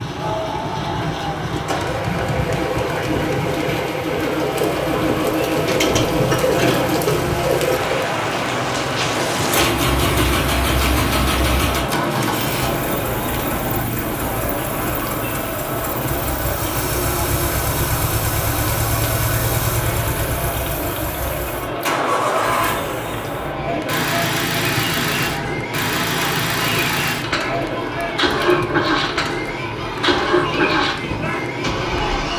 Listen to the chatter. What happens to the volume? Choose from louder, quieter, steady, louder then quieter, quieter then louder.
steady.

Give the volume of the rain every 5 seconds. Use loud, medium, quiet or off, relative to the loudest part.
medium, loud, loud, medium, medium, medium, medium.